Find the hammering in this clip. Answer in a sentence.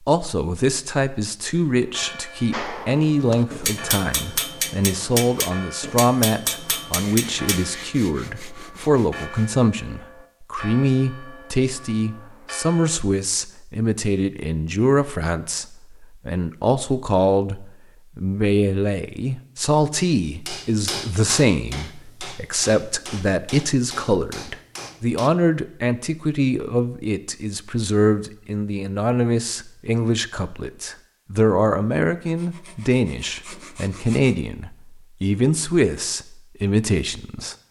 You can hear the hammering from 2.5 to 7.6 s and from 20.2 to 25.3 s.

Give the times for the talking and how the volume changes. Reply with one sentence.
You can hear the talking from 0.1 to 37.5 s, at a steady volume.